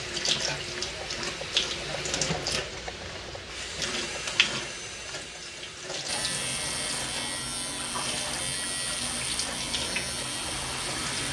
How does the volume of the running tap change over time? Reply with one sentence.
The loudness of the running tap goes down.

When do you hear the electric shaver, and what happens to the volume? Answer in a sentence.
You can hear the electric shaver from 6.0 to 11.2 s, at a steady volume.